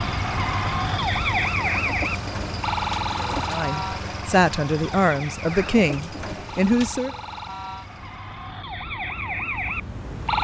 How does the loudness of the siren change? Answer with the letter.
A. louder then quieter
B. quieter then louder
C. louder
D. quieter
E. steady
B.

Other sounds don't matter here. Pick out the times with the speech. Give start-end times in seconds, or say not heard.
3.5-7.2.